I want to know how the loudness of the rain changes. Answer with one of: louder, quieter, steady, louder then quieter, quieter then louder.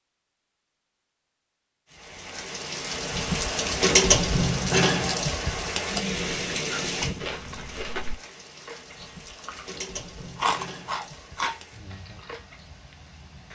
quieter.